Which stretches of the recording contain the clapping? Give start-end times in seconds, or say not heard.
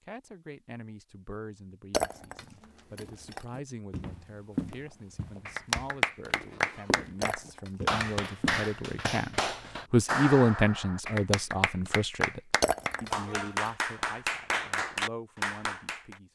5.5-16.1.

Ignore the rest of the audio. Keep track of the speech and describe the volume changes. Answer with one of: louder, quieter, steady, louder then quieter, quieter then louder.
louder then quieter.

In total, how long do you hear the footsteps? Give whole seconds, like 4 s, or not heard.
6 s.